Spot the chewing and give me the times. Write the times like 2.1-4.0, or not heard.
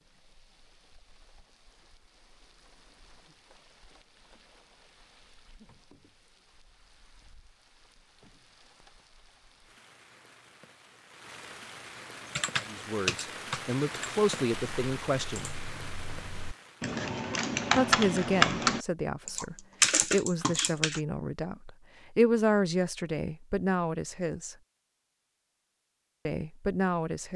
not heard.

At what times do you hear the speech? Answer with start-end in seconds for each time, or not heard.
12.6-15.5, 17.8-24.6, 26.2-27.3.